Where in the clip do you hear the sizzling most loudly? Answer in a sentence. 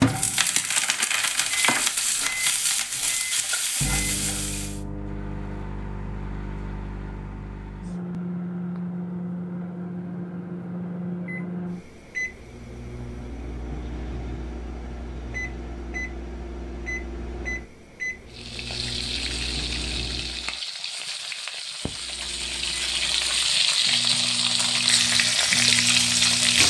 The loudest moment of the sizzling is at 26 seconds.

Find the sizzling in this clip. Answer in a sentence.
The sizzling can be heard from 0.0 to 4.8 s and from 18.2 to 26.6 s.